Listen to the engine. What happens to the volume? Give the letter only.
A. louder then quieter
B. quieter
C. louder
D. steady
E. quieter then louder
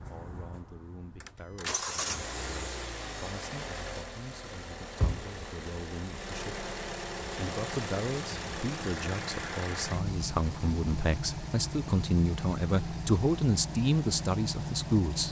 D.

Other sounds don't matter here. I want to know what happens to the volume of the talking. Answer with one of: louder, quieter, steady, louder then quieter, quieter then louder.
louder.